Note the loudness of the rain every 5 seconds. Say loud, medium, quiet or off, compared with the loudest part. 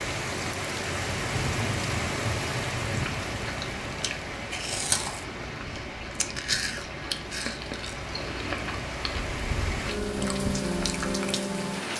loud, medium, loud.